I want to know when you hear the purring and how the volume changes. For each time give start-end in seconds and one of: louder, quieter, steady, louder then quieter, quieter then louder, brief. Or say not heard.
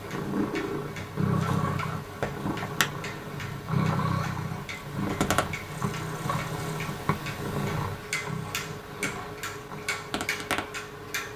0.0-11.3 quieter.